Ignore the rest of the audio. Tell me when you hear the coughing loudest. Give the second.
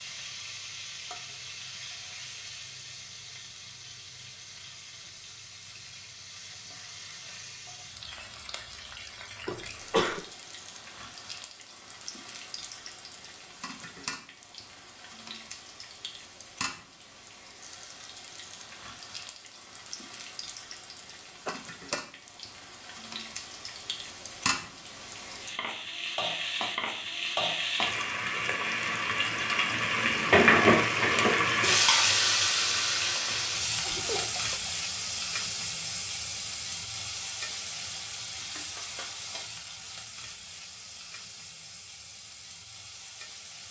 10 s.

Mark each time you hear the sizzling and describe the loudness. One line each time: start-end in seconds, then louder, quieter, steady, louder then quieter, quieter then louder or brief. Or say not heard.
0.0-43.6 louder then quieter.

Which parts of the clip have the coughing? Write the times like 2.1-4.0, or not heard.
9.4-10.2, 21.4-22.0, 33.3-34.7.